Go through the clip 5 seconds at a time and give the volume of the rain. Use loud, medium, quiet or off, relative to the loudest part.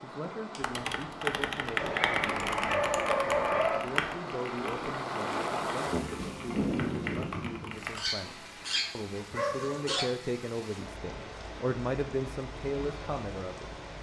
medium, loud, medium.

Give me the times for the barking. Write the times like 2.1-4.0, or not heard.
1.8-3.8, 8.0-10.1.